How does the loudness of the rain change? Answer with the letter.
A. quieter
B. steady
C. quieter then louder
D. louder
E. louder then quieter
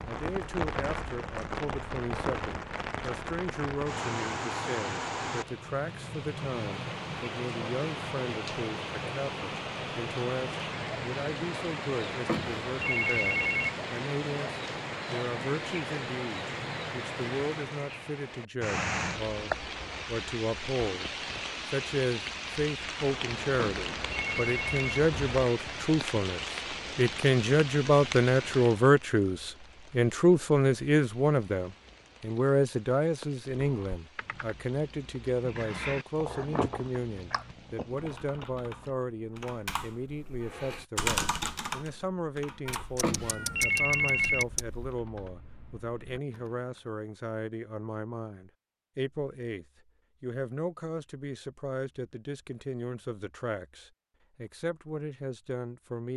A.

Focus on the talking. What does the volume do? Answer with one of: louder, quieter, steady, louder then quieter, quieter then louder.
louder then quieter.